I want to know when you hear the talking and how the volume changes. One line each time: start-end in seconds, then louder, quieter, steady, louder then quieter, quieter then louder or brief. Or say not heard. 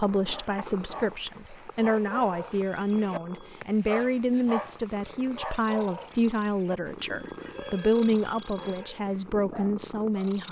0.0-10.4 steady.